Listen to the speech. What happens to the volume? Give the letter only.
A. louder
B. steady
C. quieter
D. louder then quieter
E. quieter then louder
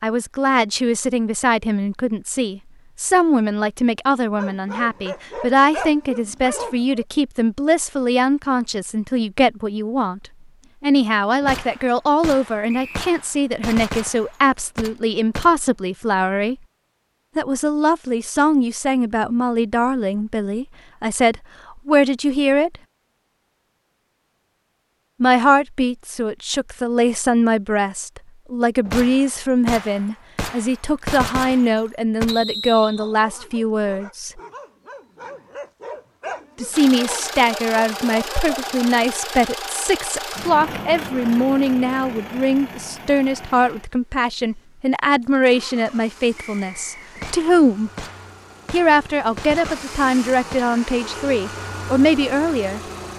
B.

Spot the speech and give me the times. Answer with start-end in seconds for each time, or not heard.
0.0-10.2, 10.8-16.6, 17.4-22.8, 25.2-34.4, 36.6-47.9, 48.7-52.8.